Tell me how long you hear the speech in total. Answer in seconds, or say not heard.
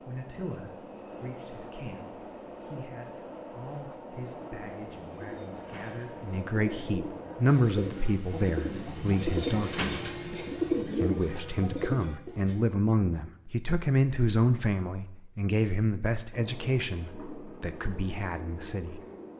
19 s.